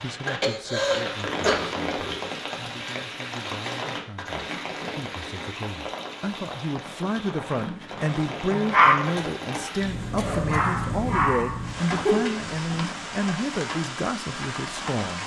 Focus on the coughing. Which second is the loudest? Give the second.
1 s.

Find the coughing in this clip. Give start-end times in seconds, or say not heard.
0.2-2.2, 9.2-10.6.